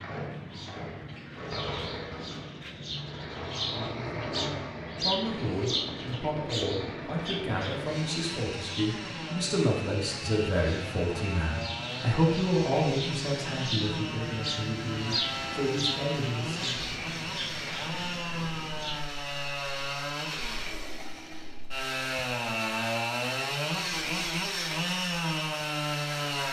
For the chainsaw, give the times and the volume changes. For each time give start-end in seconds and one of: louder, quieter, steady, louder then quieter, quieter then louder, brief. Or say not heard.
0.0-26.4 louder.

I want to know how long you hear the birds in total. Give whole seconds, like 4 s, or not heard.
19 s.